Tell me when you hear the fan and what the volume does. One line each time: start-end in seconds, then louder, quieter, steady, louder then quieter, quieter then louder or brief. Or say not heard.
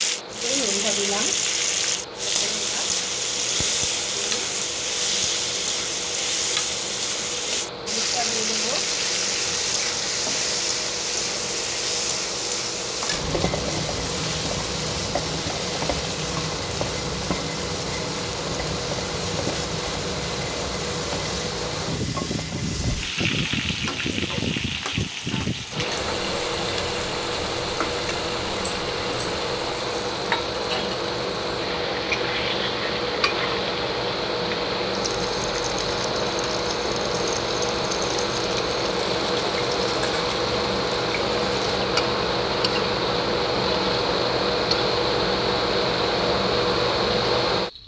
0.0-47.8 louder.